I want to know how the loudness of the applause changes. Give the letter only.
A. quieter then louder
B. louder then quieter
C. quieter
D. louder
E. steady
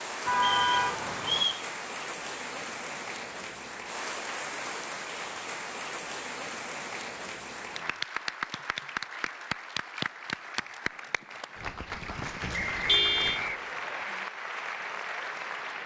E.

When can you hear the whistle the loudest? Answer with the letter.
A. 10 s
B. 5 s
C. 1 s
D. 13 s
C.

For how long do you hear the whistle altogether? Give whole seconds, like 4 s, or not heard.
3 s.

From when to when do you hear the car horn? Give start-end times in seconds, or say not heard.
0.2-1.5, 12.4-13.4.